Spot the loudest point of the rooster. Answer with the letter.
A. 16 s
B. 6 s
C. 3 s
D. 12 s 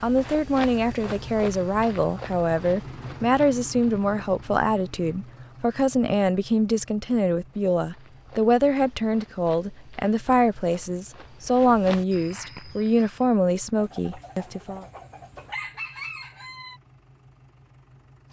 A.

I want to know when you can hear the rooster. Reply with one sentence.
You can hear the rooster from 13.8 to 16.8 s.